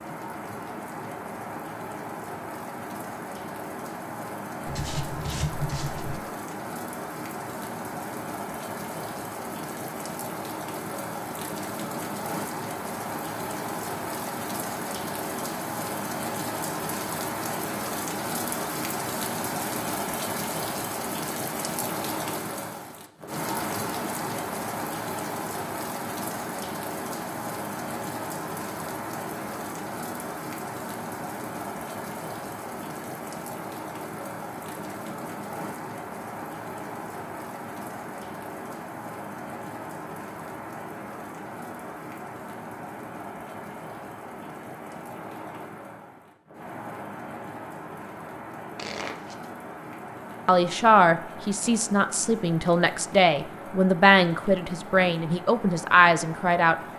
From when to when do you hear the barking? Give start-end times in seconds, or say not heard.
not heard.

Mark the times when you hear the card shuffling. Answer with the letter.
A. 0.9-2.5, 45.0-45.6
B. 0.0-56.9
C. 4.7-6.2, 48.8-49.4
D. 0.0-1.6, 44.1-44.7
C.